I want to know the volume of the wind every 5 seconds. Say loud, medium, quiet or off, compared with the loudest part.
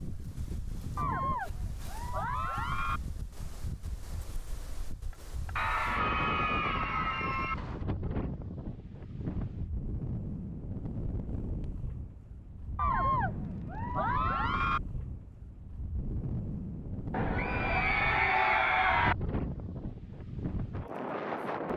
medium, loud, loud, loud, loud.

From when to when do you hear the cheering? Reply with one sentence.
The cheering can be heard from 0.9 to 3.0 s, from 5.5 to 7.5 s, from 12.8 to 14.8 s and from 17.1 to 19.1 s.